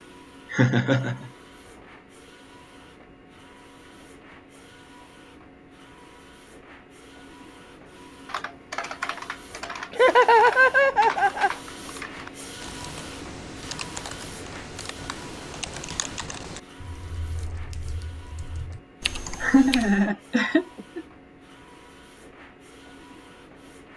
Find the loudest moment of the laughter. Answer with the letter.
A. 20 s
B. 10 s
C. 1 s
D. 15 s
B.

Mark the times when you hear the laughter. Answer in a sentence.
The laughter can be heard from 0.5 to 1.3 s, from 9.9 to 11.5 s and from 19.2 to 21.0 s.